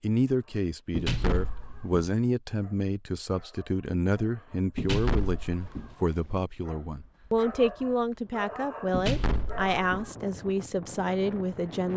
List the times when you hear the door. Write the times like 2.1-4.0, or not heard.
0.9-2.0, 4.8-6.0, 8.9-10.1.